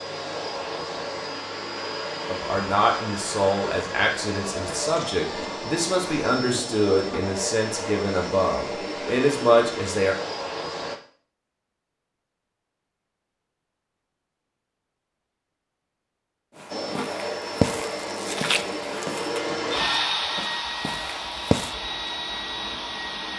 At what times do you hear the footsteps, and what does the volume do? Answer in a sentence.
You can hear the footsteps from 16.6 to 21.8 s, getting quieter.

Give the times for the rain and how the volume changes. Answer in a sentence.
The rain can't be heard in this clip.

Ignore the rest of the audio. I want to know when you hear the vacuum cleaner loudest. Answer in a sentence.
The volume of the vacuum cleaner peaks at 20 seconds.